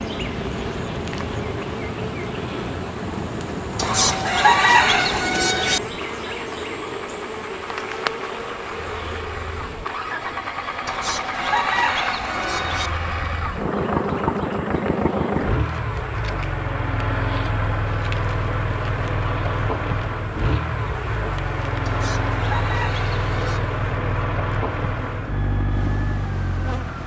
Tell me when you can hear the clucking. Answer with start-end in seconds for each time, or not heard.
3.8-5.8, 10.8-12.9, 21.9-23.6.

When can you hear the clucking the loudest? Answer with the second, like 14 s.
5 s.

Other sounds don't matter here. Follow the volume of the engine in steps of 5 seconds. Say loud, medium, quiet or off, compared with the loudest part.
medium, medium, loud, loud, loud, loud.